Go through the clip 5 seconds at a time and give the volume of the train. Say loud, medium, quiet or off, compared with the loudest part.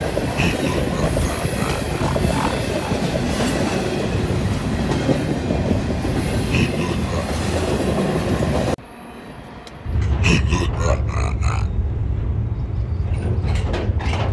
loud, loud, medium.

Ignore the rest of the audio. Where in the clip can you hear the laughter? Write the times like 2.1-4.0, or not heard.
0.3-3.0, 6.5-7.2, 10.2-11.7.